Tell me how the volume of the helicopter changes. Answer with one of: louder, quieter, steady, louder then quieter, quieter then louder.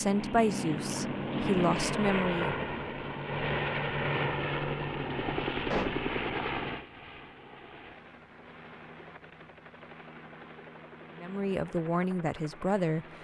quieter.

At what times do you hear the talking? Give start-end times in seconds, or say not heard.
0.0-2.6, 11.2-13.1.